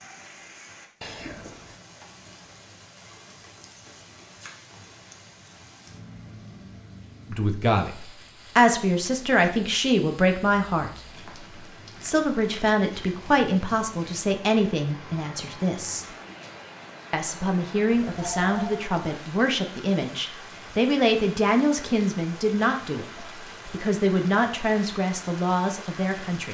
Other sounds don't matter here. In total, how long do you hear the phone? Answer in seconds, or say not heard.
2 s.